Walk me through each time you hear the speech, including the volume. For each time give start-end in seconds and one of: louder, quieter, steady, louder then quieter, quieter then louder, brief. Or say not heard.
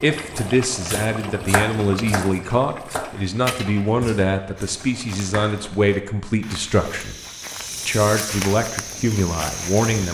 0.0-7.2 steady
7.8-10.1 brief.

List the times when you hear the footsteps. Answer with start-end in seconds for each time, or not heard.
4.5-10.1.